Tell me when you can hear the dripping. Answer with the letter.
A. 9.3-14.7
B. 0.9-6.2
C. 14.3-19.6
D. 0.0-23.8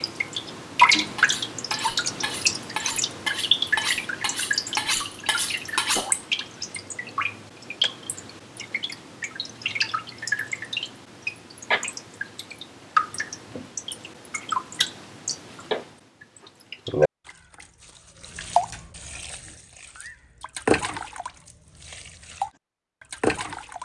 D.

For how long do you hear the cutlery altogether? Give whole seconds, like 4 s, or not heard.
5 s.